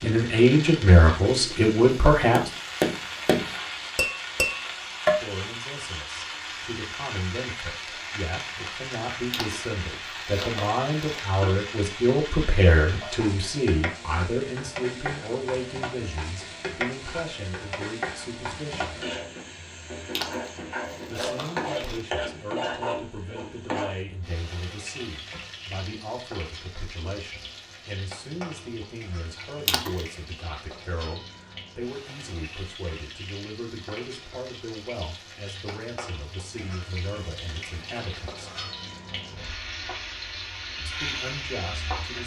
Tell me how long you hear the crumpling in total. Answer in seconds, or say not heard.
4 s.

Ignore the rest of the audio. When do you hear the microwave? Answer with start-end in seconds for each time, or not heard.
not heard.